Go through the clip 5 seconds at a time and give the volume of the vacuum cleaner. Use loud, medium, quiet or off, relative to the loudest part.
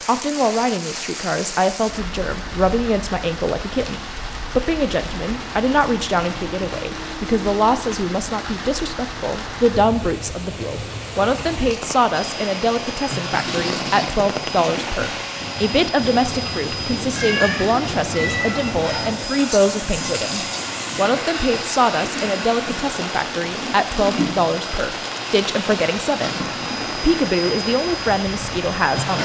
off, off, loud, loud, loud, loud.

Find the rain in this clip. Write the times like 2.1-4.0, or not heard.
0.0-29.2.